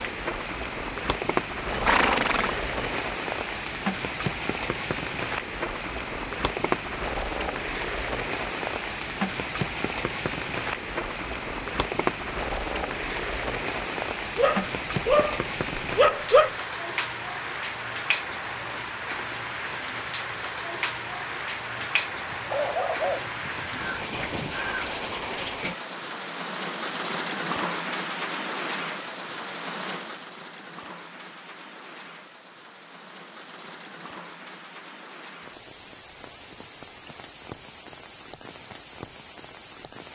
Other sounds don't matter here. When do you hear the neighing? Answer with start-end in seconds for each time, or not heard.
1.7-3.0.